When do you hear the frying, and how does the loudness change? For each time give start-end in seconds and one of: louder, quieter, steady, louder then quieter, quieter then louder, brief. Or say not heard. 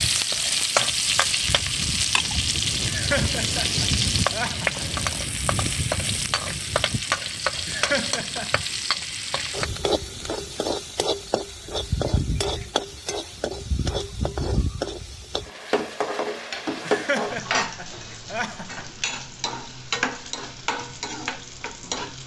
0.0-22.2 quieter.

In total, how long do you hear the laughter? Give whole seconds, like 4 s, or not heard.
5 s.